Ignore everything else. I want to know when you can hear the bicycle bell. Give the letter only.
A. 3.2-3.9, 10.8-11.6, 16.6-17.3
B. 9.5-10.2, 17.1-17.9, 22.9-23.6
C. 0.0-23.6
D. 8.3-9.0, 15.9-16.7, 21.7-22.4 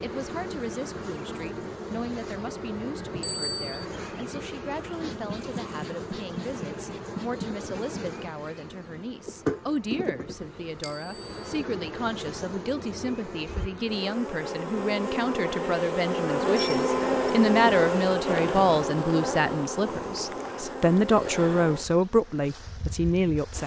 A.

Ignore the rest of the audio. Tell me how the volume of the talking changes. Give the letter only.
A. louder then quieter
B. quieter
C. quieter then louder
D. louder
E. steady
D.